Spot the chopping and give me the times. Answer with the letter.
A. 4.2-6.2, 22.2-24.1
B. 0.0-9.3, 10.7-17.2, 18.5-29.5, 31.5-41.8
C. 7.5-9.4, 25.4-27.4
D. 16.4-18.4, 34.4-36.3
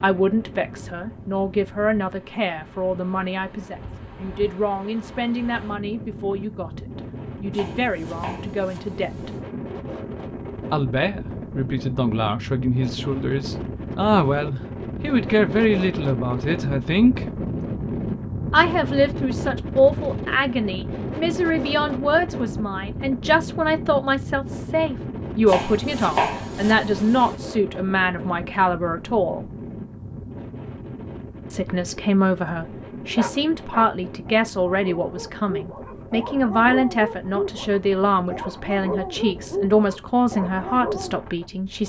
C.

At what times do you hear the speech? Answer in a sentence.
You can hear the speech from 0.0 to 9.3 s, from 10.7 to 17.2 s, from 18.5 to 29.5 s and from 31.5 to 41.8 s.